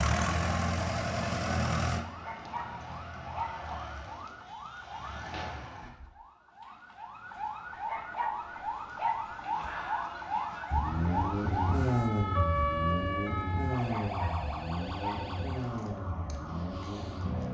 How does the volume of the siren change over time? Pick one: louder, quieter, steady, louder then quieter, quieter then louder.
louder then quieter.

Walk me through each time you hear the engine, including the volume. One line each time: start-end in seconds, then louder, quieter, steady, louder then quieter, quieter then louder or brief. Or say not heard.
0.0-5.9 quieter
10.7-17.4 quieter.